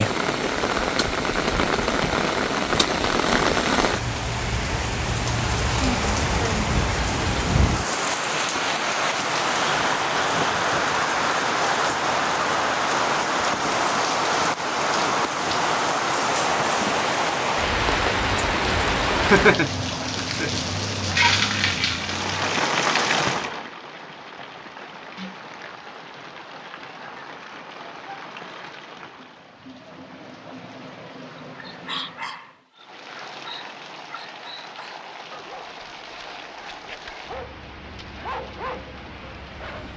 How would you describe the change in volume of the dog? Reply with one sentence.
The volume of the dog goes down, then up.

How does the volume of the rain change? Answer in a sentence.
The volume of the rain goes down.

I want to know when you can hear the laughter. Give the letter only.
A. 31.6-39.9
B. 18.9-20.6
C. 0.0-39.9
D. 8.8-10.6
B.